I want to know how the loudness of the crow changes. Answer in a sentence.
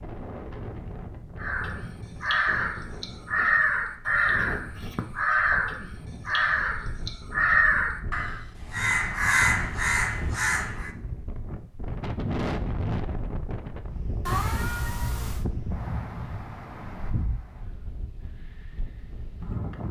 The loudness of the crow stays about the same.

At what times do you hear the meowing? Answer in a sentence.
The meowing can be heard from 14.2 to 15.4 s.